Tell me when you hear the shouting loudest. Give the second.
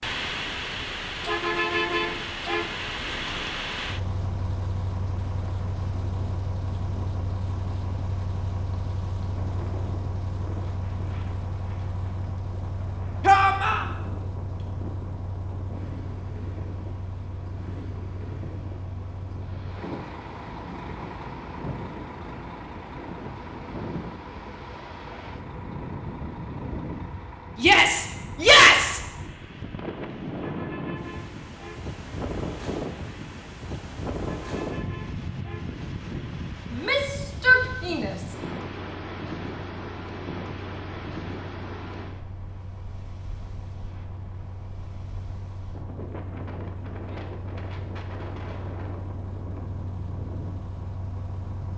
29 s.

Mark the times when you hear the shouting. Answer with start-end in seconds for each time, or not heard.
13.2-13.8, 27.6-29.0, 36.7-38.1.